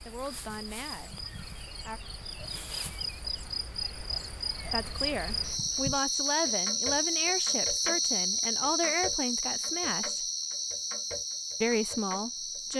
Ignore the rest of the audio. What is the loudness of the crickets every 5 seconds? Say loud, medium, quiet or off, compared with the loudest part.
medium, loud, medium.